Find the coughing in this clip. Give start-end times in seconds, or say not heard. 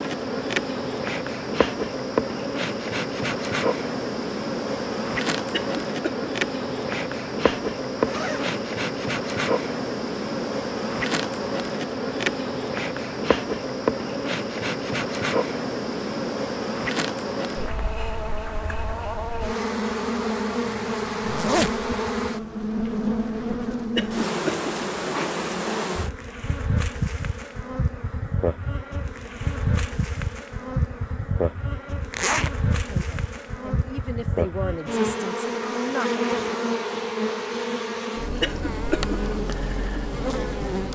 5.5-6.3, 23.9-24.7, 38.4-39.2.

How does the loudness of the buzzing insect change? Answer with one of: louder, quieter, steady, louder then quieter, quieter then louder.
steady.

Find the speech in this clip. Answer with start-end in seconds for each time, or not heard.
32.9-36.1.